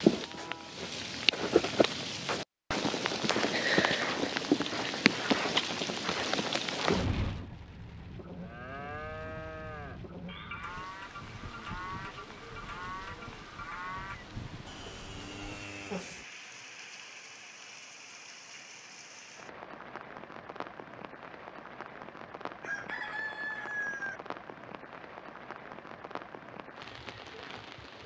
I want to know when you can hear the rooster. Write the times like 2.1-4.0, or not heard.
22.6-24.2.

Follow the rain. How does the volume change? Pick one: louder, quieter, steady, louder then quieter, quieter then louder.
quieter.